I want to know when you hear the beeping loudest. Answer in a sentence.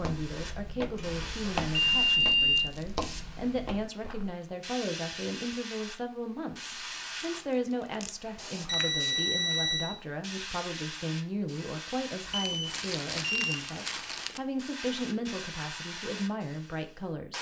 The volume of the beeping peaks at 2 seconds.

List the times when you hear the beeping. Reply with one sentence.
The beeping can be heard from 0.9 to 2.7 s, from 8.7 to 9.9 s and from 12.2 to 13.7 s.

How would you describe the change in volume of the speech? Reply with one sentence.
The volume of the speech stays about the same.